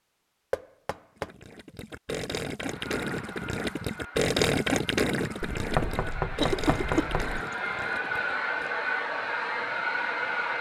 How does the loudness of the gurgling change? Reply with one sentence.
The volume of the gurgling goes up, then down.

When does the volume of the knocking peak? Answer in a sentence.
The volume of the knocking peaks at 6 seconds.